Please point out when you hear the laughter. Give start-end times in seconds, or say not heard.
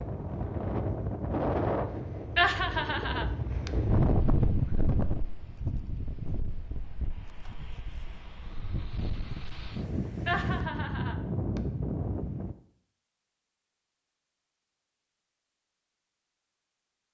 2.4-3.7, 10.2-11.6.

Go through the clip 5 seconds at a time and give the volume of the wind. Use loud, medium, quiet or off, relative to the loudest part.
loud, medium, loud, off.